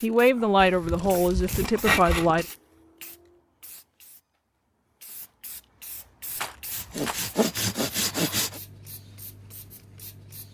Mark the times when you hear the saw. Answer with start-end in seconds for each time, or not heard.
0.6-2.3, 6.7-8.6.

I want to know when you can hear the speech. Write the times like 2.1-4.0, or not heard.
0.0-2.5.